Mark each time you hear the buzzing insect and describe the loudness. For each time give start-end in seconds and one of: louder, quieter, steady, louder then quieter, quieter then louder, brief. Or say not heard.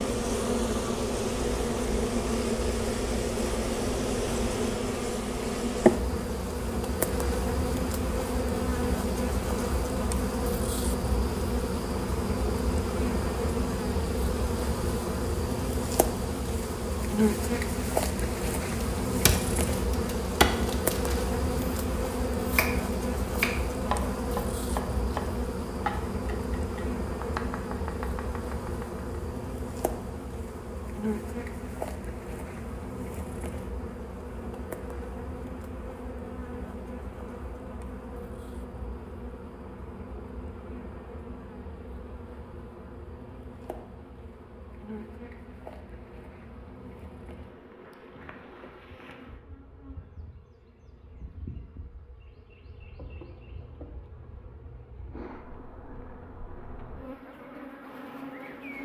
0.0-58.7 quieter.